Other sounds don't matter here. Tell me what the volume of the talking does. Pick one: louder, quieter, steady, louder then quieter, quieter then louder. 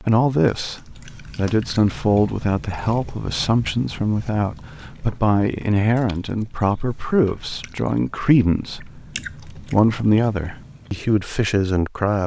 steady.